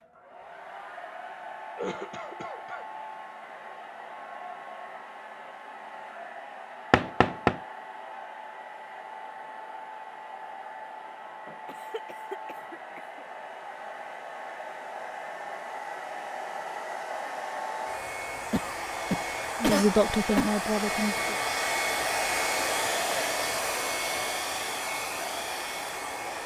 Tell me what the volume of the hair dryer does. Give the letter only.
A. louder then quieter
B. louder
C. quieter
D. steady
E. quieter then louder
B.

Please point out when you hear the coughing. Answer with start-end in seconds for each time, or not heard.
1.8-2.9, 11.7-13.2, 18.5-20.5.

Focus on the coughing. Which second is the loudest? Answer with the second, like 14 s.
20 s.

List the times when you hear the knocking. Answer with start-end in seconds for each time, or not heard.
6.9-7.6.